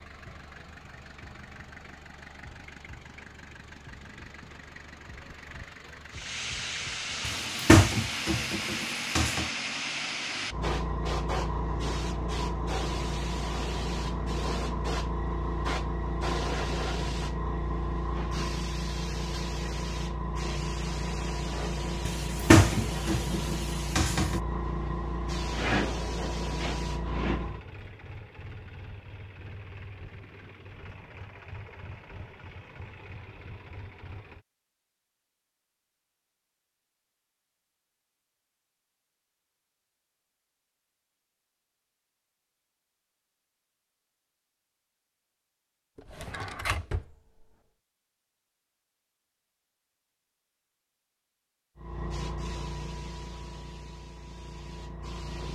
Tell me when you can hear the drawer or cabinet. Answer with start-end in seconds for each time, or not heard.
7.2-9.4, 22.1-24.4, 46.0-47.5.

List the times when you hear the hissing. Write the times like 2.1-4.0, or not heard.
6.1-27.6, 51.8-55.4.